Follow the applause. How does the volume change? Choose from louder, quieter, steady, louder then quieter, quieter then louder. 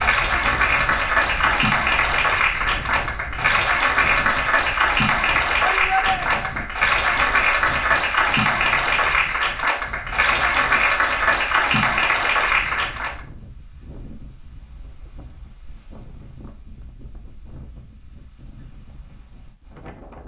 steady.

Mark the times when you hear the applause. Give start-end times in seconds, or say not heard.
0.0-13.2.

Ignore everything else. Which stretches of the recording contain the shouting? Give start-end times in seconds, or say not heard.
5.5-6.5.